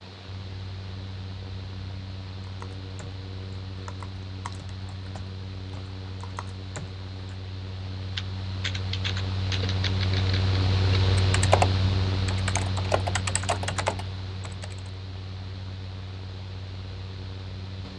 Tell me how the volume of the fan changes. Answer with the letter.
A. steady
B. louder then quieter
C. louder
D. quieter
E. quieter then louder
B.